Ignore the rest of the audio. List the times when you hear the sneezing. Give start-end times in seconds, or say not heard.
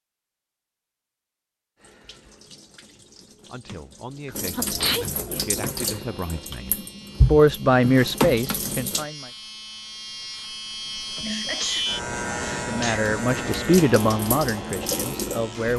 4.2-5.0, 11.2-13.1.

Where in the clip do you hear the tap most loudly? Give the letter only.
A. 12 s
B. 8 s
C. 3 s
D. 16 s
B.